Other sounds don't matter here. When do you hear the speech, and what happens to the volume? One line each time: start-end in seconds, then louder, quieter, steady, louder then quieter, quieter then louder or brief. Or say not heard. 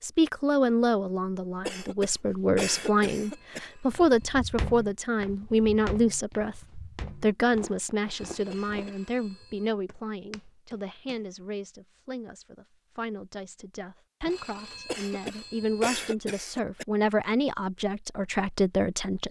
0.0-19.2 quieter then louder.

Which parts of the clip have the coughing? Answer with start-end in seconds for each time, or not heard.
1.6-3.6, 8.5-9.0, 14.8-16.9.